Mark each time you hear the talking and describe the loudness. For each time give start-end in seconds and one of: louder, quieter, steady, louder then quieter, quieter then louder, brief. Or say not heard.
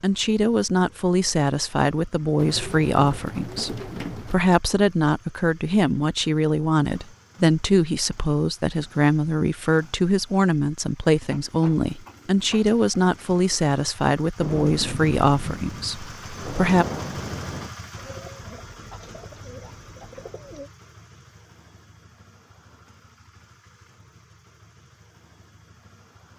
0.0-16.9 steady.